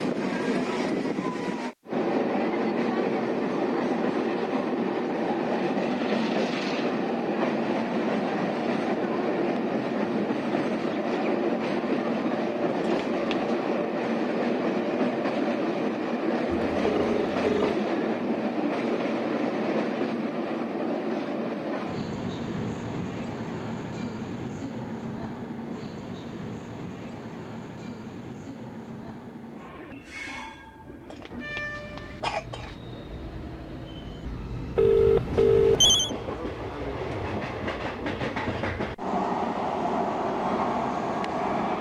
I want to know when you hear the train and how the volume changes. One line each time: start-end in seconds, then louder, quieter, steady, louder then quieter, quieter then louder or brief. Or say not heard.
0.0-41.7 quieter then louder.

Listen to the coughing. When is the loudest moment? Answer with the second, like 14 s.
32 s.